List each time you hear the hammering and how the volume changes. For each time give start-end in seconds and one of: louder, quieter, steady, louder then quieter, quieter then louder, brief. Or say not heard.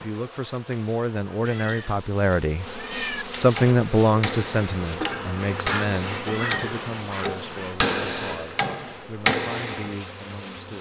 3.5-9.9 louder.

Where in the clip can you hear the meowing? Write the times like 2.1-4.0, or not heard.
1.4-3.2, 6.2-7.8.